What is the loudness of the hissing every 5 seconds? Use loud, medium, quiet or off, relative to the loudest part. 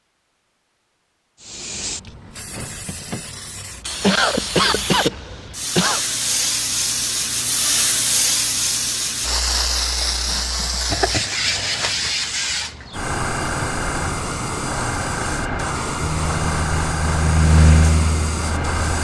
medium, loud, loud, loud.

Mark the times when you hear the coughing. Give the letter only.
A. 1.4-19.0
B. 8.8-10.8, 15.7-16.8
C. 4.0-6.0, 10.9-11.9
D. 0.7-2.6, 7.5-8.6
C.